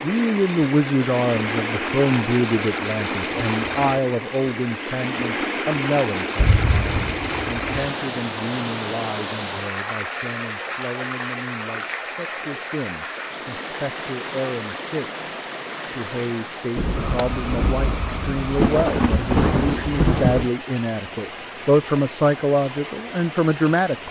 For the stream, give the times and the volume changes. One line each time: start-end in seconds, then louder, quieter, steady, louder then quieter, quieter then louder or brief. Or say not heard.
0.0-24.0 quieter.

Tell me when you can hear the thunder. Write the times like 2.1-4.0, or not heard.
6.3-7.7, 16.8-20.5.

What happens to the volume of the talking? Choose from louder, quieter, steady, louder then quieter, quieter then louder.
quieter then louder.